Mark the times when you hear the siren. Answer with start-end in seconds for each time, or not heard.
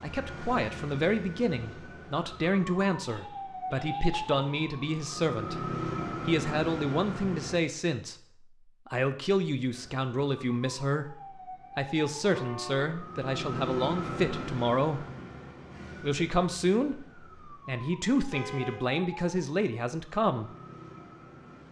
0.0-7.6, 9.7-21.6.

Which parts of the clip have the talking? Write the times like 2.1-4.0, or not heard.
0.0-5.7, 6.2-8.2, 8.8-11.2, 11.8-15.1, 16.0-20.5.